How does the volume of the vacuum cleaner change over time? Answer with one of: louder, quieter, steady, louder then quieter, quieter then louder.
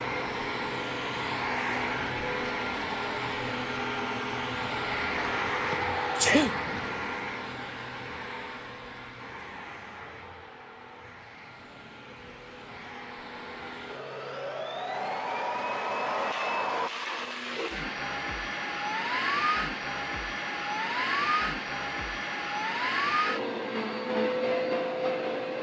quieter then louder.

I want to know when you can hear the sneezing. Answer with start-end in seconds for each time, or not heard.
5.7-6.7.